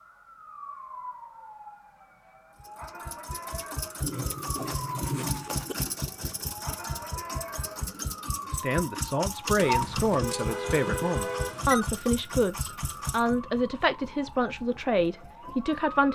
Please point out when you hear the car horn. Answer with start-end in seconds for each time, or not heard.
4.0-5.8, 9.6-11.9.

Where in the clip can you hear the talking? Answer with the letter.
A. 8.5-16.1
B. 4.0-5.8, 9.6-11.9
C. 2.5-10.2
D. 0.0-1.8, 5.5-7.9
A.